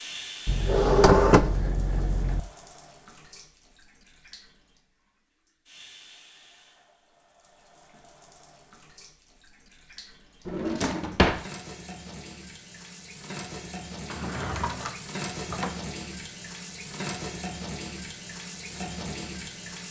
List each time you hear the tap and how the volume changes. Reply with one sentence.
You can hear the tap from 0.0 to 19.8 s, getting quieter then louder.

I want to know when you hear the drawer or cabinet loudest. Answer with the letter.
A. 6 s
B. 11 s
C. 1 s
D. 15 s
C.